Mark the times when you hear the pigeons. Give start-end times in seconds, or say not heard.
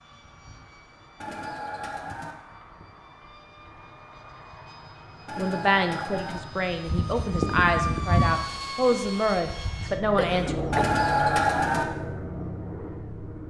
1.2-2.4, 5.2-6.4, 10.7-11.8.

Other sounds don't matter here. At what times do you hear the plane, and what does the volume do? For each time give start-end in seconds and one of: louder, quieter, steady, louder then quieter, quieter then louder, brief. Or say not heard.
0.0-13.4 louder.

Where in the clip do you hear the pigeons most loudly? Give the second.
11 s.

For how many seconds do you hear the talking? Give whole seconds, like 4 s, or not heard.
5 s.